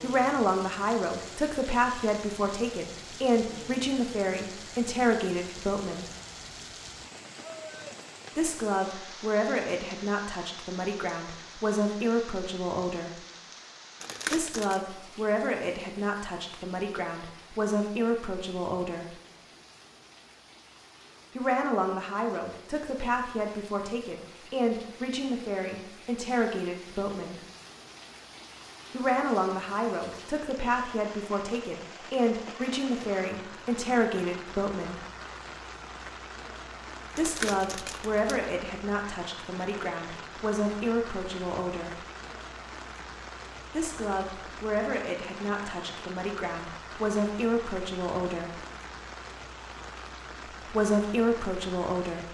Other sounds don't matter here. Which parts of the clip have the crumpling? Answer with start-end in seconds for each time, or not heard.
14.0-14.8, 37.1-38.5.